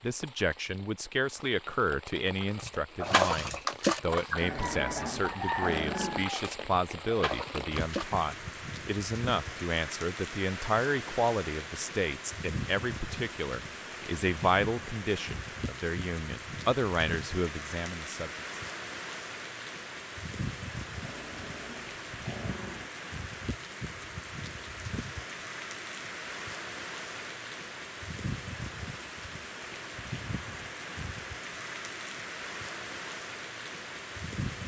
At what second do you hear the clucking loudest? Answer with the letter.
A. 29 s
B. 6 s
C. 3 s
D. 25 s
C.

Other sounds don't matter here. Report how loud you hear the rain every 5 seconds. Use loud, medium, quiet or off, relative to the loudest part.
medium, loud, loud, loud, loud, loud, loud.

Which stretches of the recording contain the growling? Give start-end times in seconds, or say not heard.
4.4-6.2, 21.0-22.9.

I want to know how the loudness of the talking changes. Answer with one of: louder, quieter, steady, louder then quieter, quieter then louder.
steady.